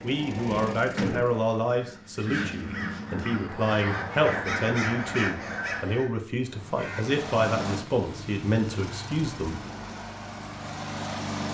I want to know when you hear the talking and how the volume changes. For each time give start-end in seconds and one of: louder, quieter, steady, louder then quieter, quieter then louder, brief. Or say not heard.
0.0-9.6 steady.